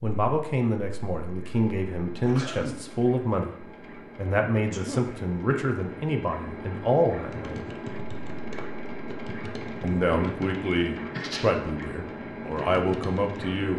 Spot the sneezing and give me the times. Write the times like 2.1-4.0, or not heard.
2.2-2.9, 4.7-5.2, 11.1-11.6.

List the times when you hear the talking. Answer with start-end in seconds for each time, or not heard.
0.0-7.7, 9.8-13.7.